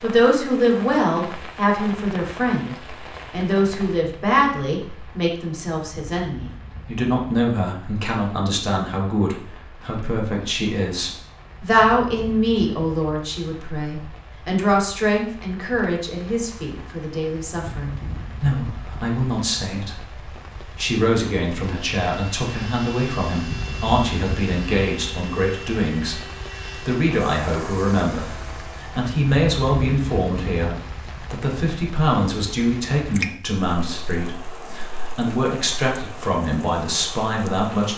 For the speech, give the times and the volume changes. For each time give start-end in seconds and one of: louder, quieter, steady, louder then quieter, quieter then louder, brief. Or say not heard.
0.0-37.9 steady.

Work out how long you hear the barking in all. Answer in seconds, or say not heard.
not heard.